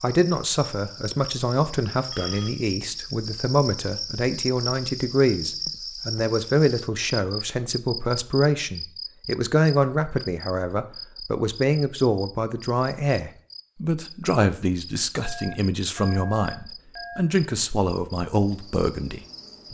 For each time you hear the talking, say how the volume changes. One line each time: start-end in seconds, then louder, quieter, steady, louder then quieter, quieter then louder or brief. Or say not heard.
0.0-19.7 steady.